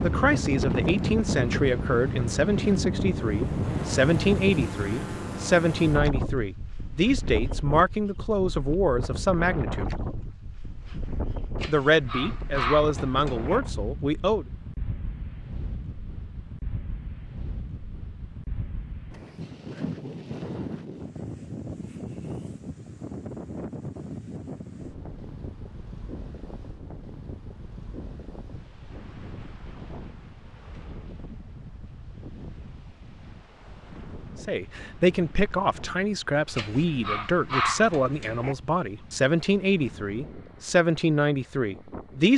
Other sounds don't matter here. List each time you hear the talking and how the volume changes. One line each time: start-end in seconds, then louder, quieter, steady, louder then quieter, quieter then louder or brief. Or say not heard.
0.0-9.9 steady
11.7-14.4 brief
34.4-42.3 steady.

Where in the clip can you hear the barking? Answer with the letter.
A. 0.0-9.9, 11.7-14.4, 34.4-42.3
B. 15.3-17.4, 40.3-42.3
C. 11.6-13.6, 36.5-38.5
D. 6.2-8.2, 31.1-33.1
C.